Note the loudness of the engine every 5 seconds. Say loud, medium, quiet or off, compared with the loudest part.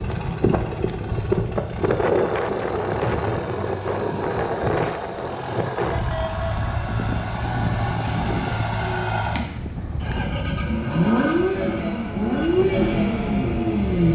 quiet, medium, loud.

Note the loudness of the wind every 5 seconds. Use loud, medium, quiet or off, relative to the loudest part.
loud, medium, medium.